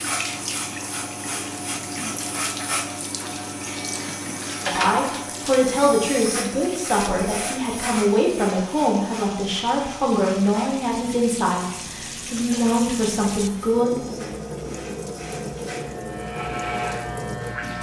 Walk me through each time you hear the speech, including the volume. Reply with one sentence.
The speech can be heard from 4.7 to 14.2 s, at a steady volume.